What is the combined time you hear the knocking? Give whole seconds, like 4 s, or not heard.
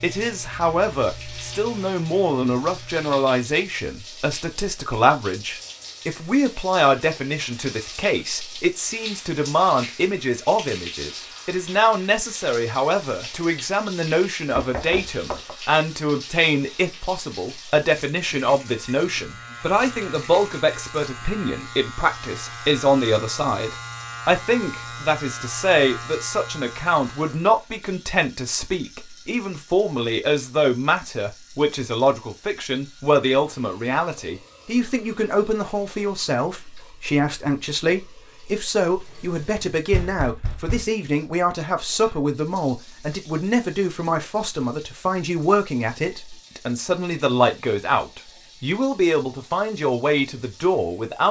2 s.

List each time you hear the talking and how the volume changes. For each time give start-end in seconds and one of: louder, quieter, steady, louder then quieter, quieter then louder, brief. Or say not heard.
0.0-51.2 steady.